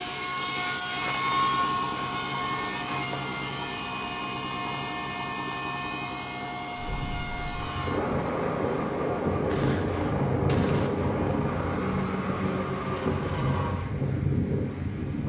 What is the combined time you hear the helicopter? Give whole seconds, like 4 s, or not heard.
14 s.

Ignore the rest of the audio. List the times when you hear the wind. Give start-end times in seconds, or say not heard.
6.8-15.2.